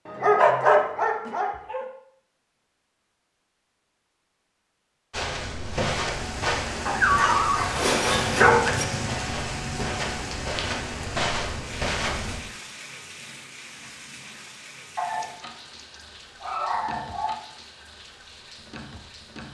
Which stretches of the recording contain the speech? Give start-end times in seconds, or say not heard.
not heard.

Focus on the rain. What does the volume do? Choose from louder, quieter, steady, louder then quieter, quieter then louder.
quieter.